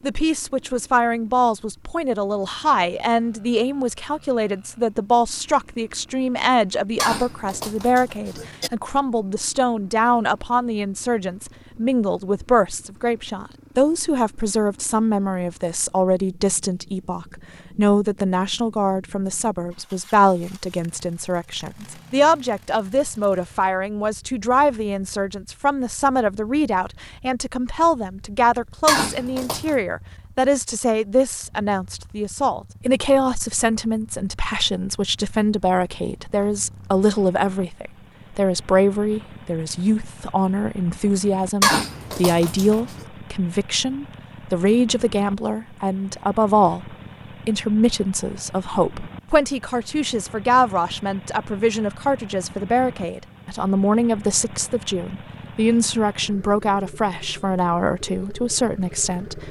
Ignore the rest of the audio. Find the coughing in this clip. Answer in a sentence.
You can hear the coughing from 7.0 to 8.7 s, from 28.9 to 29.8 s and from 41.6 to 43.0 s.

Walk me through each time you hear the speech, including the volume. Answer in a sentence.
You can hear the speech from 0.0 to 59.4 s, at a steady volume.